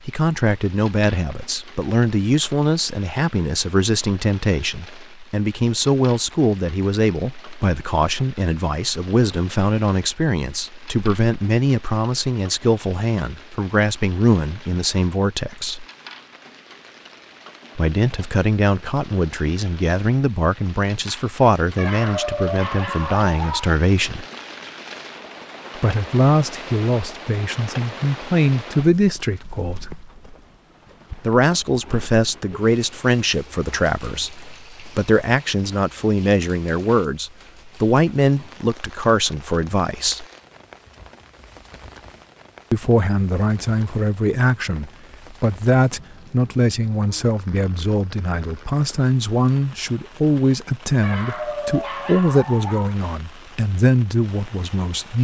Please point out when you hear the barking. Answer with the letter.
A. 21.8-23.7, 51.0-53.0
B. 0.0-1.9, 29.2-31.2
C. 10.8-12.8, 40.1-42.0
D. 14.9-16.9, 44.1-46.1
A.